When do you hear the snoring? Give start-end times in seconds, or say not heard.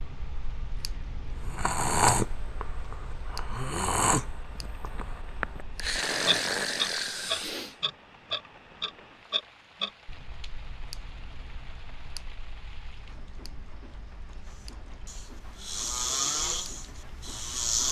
1.4-7.8, 15.1-17.8.